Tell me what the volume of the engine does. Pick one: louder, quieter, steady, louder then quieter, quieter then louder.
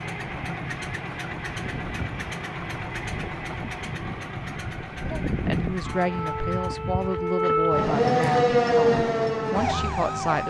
quieter.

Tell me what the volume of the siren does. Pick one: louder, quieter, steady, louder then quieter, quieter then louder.
louder.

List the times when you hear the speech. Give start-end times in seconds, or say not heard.
5.4-10.4.